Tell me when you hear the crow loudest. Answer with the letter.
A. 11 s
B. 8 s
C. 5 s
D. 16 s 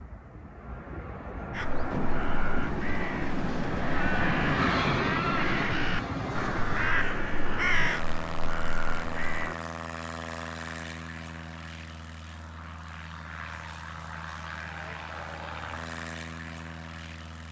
B.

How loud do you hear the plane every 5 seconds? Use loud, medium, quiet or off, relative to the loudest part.
loud, loud, medium, medium.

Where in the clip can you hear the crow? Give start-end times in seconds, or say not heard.
1.5-9.6.